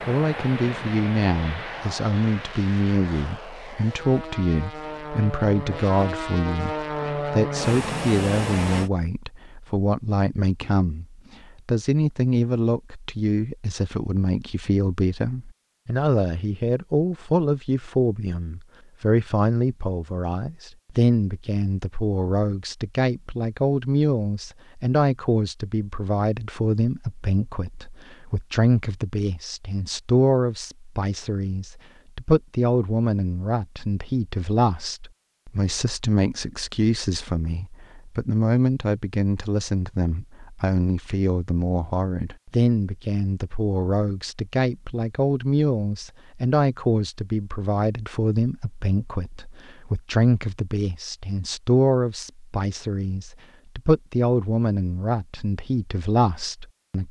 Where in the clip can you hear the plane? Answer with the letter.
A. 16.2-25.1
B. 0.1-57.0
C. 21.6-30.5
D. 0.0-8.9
D.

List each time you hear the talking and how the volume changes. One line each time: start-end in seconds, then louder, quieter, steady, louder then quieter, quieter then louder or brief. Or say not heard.
0.1-57.0 steady.